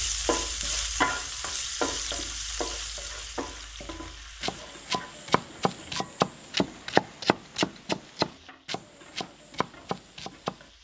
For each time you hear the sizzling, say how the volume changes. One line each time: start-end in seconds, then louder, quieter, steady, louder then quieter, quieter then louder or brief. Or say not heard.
0.0-10.7 quieter.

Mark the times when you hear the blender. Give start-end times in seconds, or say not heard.
not heard.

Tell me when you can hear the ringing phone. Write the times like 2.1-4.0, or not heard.
not heard.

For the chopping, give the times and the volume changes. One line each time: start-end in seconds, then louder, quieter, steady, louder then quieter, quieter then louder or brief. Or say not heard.
4.4-10.7 louder then quieter.